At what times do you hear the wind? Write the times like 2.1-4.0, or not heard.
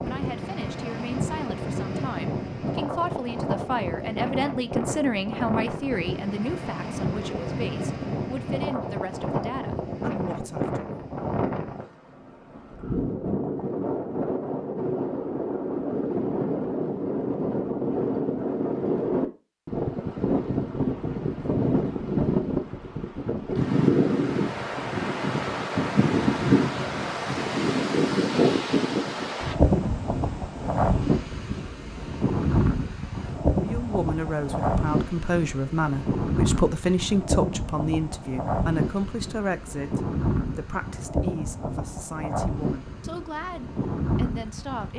0.0-44.9.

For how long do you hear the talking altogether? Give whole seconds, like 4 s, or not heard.
22 s.